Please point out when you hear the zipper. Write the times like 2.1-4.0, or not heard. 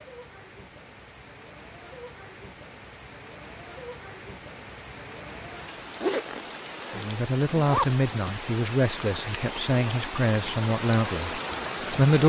6.0-7.9.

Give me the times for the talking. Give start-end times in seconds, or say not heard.
7.0-12.2.